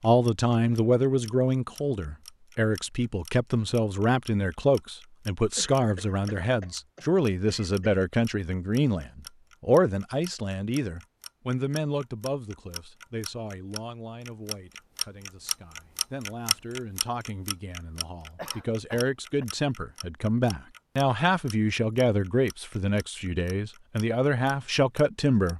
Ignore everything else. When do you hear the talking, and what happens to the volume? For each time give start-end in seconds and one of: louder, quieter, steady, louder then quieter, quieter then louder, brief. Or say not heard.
0.0-25.5 quieter then louder.